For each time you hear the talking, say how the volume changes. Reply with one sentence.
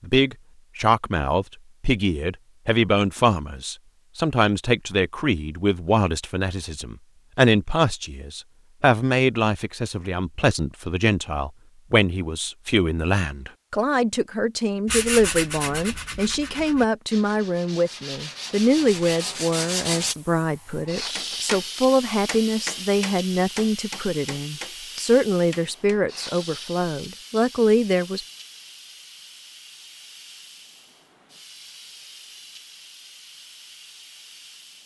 The talking can be heard from 0.0 to 28.2 s, at a steady volume.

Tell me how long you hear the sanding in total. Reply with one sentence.
The sanding can be heard for 5 seconds in total.